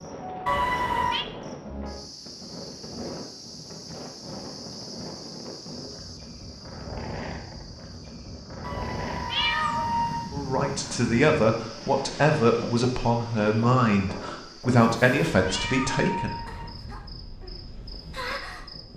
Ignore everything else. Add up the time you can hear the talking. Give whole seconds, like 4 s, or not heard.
6 s.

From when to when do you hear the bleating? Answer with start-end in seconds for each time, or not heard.
not heard.